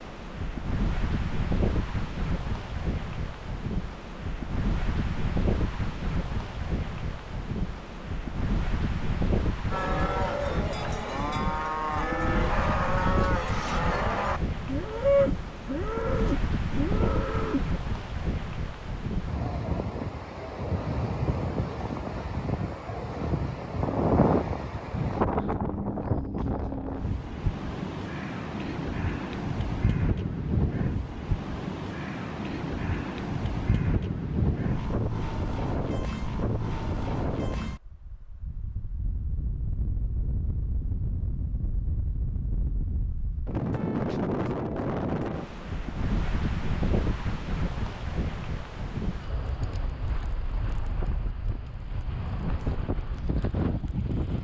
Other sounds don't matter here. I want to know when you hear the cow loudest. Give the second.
15 s.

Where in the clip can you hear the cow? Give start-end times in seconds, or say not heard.
9.7-17.6.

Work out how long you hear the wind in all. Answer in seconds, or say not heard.
54 s.